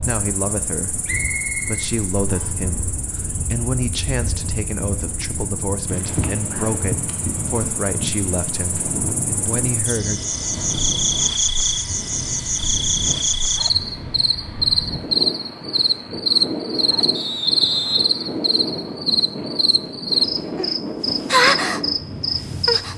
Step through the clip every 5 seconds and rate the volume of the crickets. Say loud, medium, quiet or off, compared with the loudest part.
quiet, quiet, loud, loud, loud.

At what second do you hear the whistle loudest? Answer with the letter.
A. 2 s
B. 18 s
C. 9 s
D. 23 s
B.